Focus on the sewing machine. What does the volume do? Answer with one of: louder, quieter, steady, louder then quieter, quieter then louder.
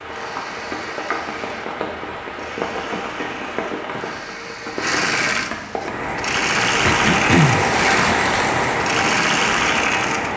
louder.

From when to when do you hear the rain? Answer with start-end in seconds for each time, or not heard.
0.0-10.3.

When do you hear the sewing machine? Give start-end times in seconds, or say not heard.
0.0-10.3.